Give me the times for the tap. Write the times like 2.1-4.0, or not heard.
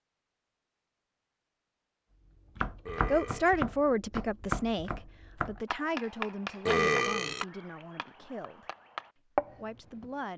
not heard.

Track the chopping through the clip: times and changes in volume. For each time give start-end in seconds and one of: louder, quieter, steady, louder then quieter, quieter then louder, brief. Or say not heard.
2.5-10.1 quieter then louder.